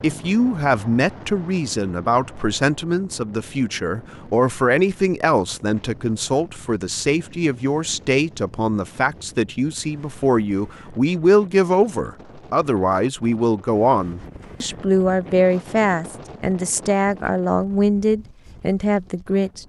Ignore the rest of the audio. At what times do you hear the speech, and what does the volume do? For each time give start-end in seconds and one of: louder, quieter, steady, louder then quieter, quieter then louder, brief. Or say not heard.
0.0-19.6 steady.